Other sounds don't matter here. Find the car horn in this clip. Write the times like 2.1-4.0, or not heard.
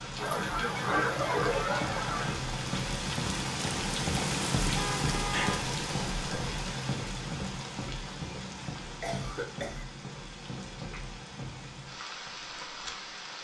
4.8-5.7.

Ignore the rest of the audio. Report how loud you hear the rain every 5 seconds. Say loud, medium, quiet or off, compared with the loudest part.
loud, loud, medium.